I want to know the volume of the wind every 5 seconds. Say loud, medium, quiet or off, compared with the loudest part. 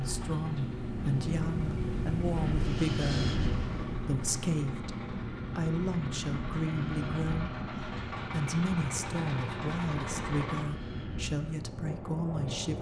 loud, medium, medium.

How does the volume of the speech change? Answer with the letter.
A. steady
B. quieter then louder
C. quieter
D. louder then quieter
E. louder
A.